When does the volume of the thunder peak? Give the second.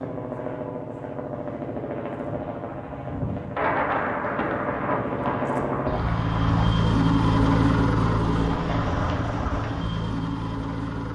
4 s.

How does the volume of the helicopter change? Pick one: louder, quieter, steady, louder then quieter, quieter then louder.
louder then quieter.